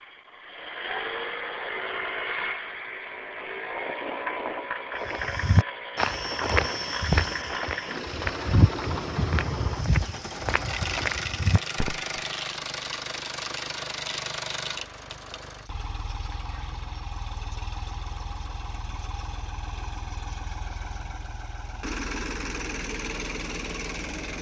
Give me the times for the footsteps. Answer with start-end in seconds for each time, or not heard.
5.0-12.2.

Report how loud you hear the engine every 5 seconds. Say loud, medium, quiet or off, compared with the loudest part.
loud, loud, loud, medium, loud.